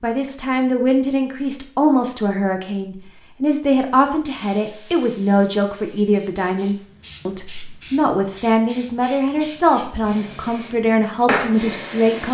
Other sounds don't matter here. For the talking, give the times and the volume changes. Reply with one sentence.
The talking can be heard from 0.0 to 12.2 s, at a steady volume.